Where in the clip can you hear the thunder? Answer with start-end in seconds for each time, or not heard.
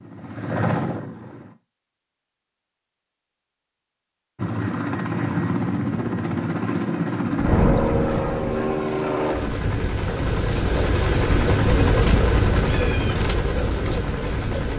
7.3-8.7.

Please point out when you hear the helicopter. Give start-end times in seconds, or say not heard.
0.0-1.6, 4.3-14.7.